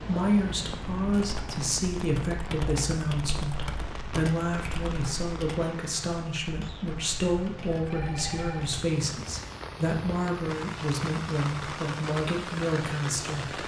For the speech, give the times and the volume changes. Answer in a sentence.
The speech can be heard from 0.1 to 13.6 s, at a steady volume.